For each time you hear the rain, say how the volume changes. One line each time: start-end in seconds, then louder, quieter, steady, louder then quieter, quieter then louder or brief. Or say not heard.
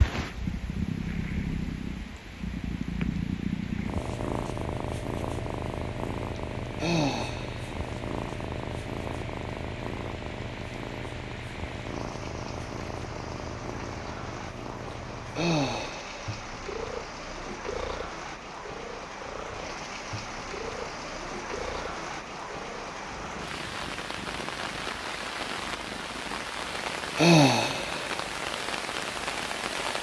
0.1-29.9 louder.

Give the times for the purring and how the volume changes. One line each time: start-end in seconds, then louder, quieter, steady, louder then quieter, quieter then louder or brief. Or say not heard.
0.0-29.9 quieter.